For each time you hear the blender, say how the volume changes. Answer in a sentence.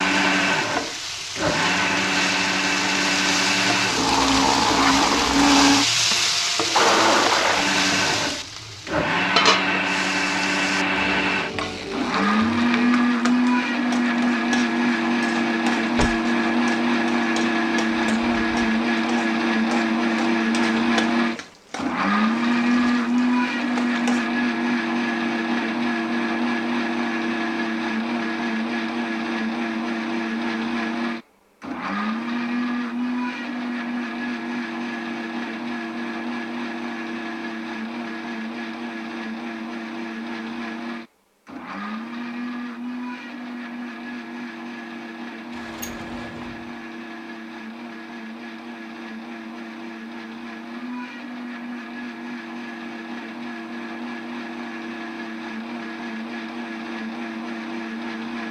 The blender can be heard from 0.0 to 58.4 s, getting quieter.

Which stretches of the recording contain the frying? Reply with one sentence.
The frying can be heard from 0.0 to 24.3 s.